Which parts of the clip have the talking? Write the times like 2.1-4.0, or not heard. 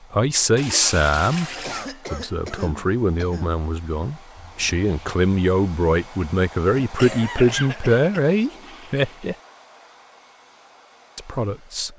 0.1-1.5, 2.1-9.3, 11.2-11.9.